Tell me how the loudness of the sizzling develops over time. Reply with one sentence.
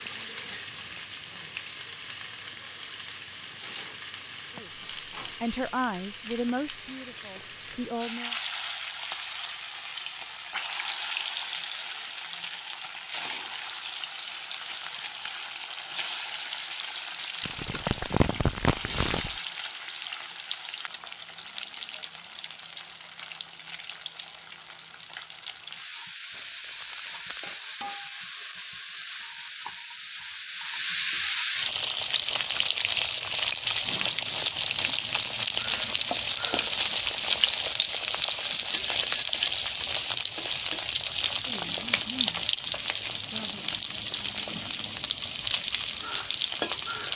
The volume of the sizzling goes up.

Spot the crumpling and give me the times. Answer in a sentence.
The crumpling can be heard from 17.4 to 19.3 s and from 26.3 to 27.6 s.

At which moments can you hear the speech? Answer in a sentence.
You can hear the speech from 4.5 to 8.3 s.